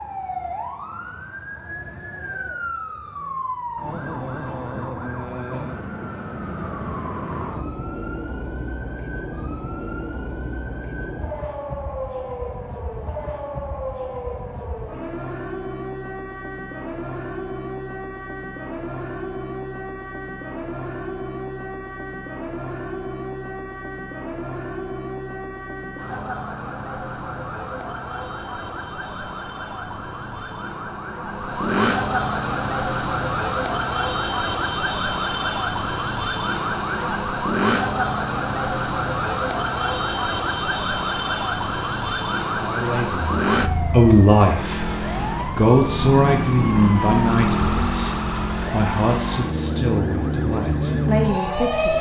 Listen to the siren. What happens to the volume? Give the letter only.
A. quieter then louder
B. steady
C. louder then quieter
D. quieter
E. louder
E.